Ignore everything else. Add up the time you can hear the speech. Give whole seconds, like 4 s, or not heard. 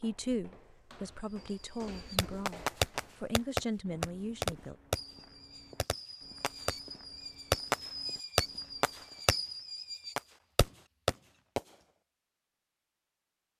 5 s.